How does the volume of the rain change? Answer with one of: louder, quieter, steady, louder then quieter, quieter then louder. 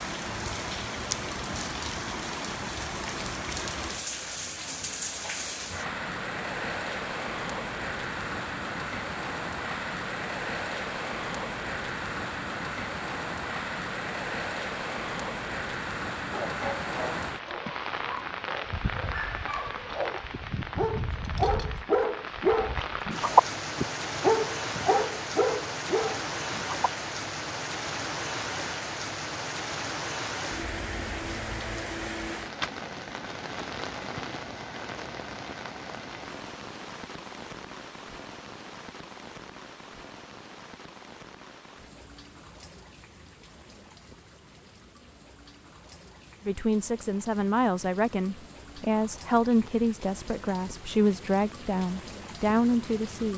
quieter.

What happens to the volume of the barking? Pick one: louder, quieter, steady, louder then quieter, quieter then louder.
louder then quieter.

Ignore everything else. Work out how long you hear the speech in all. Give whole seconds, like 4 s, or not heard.
7 s.